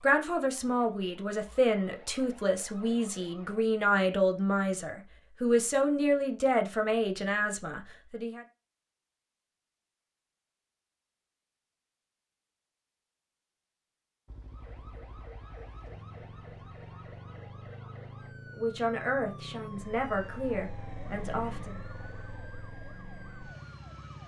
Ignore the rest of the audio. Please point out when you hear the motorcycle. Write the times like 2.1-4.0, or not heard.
14.2-24.2.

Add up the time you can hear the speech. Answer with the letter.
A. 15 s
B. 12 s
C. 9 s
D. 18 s
B.